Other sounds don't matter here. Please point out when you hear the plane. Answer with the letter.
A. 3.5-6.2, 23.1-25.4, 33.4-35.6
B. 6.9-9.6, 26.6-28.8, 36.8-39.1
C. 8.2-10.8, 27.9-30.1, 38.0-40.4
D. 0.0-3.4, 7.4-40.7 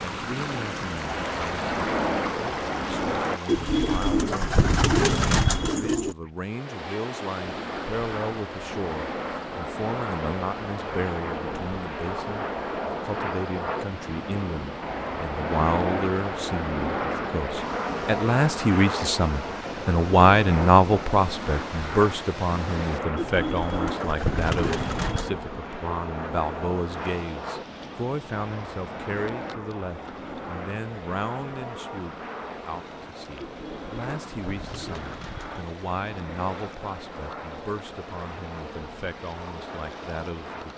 D.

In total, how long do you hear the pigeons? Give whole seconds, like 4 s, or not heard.
7 s.